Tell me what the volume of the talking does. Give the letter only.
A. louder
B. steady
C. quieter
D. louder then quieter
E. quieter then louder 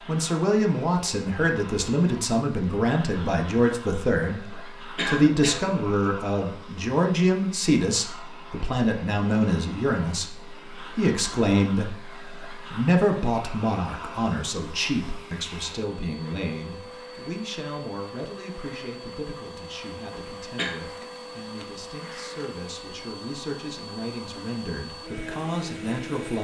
C.